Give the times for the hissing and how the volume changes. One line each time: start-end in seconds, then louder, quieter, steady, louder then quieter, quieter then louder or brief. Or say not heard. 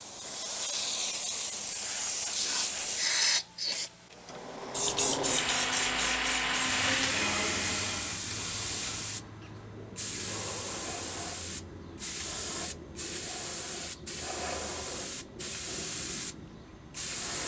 0.0-17.4 quieter.